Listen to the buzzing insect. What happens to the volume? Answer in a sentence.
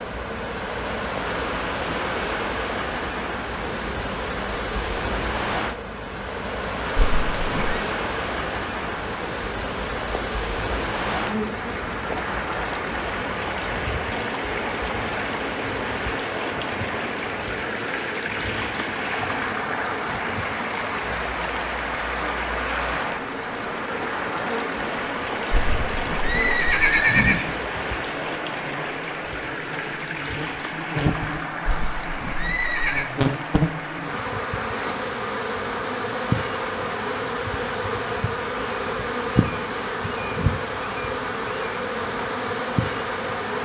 The loudness of the buzzing insect goes up.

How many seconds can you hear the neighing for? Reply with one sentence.
You can hear the neighing for 4 seconds altogether.